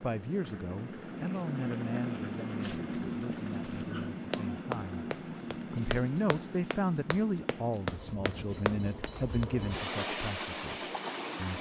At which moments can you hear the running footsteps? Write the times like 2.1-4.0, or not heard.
2.4-9.5.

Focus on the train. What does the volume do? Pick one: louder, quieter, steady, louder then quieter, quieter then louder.
quieter then louder.